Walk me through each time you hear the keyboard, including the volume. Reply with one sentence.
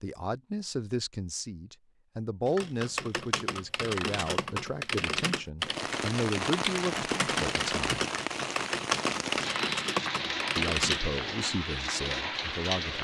The keyboard can be heard from 2.5 to 11.0 s, at a steady volume.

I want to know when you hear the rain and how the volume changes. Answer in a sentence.
The rain can be heard from 5.6 to 12.9 s, at a steady volume.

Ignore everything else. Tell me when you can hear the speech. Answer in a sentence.
You can hear the speech from 0.0 to 8.1 s and from 10.6 to 12.9 s.